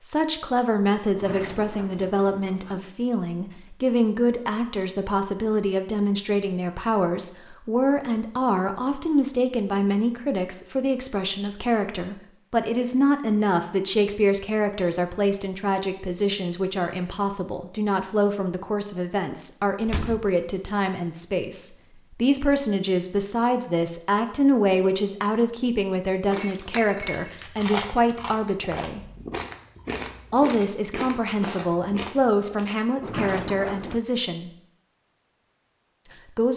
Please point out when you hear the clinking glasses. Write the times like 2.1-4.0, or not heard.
26.2-27.4.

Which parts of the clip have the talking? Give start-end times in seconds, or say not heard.
0.0-29.0, 30.3-34.5, 36.0-36.5.